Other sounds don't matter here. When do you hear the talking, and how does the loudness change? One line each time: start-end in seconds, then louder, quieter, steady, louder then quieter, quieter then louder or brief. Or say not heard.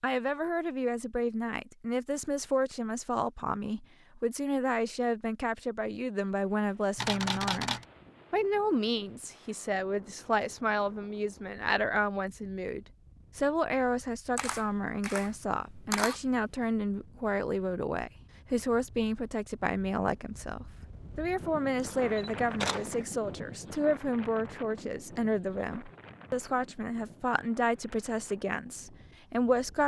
0.0-29.8 steady.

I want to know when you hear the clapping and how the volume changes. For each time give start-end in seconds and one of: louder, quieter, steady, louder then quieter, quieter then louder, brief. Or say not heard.
not heard.